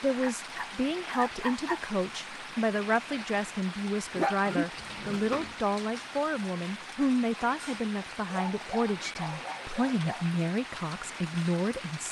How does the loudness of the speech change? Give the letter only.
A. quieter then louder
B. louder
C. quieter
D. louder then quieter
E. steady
E.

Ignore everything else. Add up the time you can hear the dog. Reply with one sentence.
You can hear the dog for 5 seconds altogether.